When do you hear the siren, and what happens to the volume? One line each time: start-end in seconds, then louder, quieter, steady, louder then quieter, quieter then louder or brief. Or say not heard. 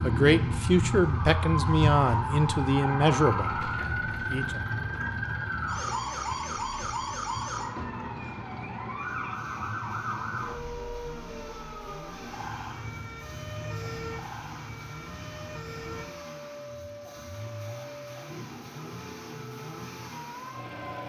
0.0-21.0 quieter.